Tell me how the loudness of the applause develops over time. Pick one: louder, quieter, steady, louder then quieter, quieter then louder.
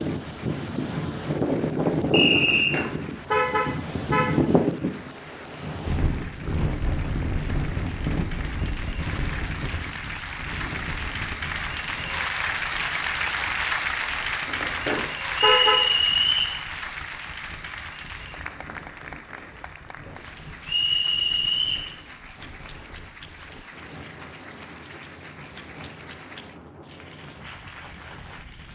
louder then quieter.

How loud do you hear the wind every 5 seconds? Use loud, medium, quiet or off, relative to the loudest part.
loud, medium, quiet, quiet, quiet, quiet.